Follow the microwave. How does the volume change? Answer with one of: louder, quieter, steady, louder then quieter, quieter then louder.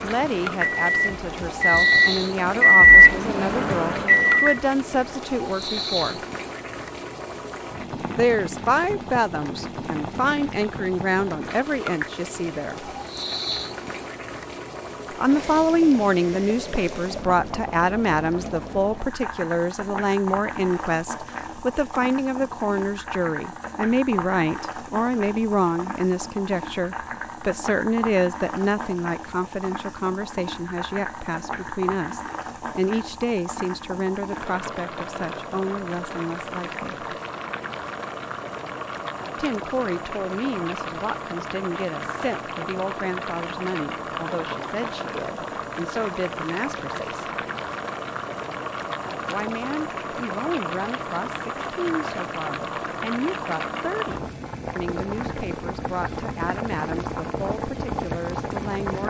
louder then quieter.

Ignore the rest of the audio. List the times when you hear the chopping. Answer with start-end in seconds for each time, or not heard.
not heard.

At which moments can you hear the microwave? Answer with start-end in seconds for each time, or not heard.
0.0-4.6.